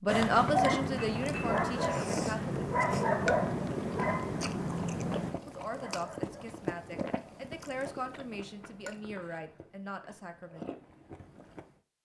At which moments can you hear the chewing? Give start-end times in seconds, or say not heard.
0.3-11.7.